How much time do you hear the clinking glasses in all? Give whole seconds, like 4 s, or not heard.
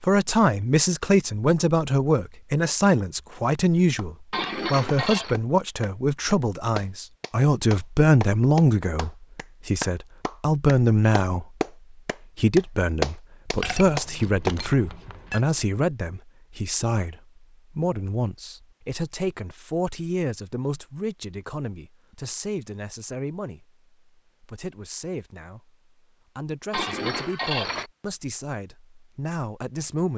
4 s.